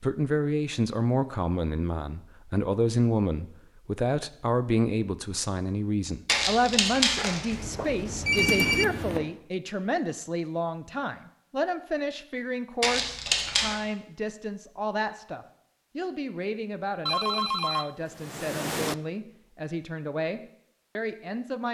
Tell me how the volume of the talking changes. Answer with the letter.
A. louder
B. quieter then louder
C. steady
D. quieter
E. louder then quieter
D.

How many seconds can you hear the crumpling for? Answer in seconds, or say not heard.
2 s.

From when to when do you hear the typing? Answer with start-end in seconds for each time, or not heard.
7.8-9.2.